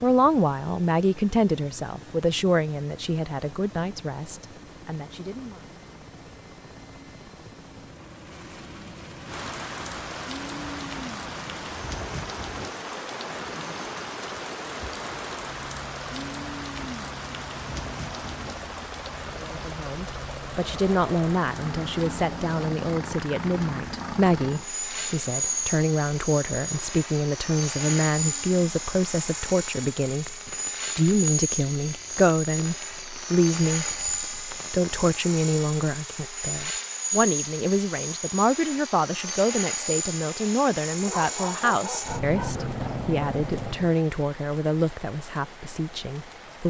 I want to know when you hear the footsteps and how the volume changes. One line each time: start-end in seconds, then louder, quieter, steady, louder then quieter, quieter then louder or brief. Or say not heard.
not heard.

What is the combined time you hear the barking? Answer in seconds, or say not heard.
2 s.